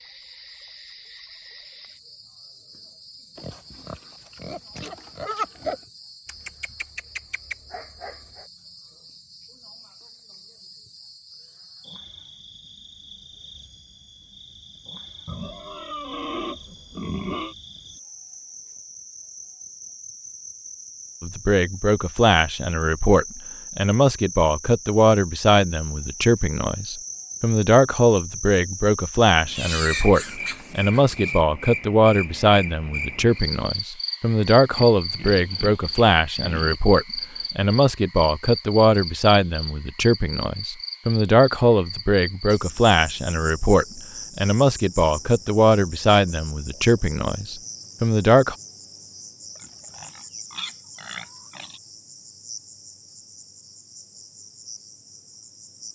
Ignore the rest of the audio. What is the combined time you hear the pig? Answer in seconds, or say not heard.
11 s.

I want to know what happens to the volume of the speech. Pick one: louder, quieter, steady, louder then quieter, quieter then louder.
steady.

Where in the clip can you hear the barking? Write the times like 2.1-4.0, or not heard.
6.2-8.4.